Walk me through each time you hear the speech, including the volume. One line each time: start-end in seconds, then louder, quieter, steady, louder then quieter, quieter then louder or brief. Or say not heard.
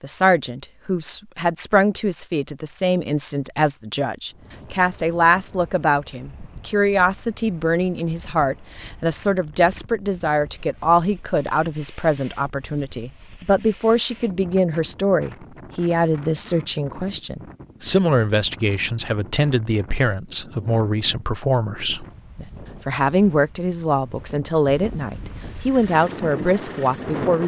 0.0-27.4 steady.